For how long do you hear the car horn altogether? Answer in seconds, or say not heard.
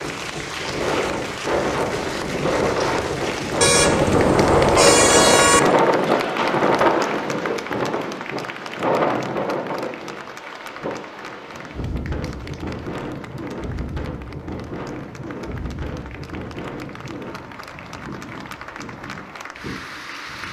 2 s.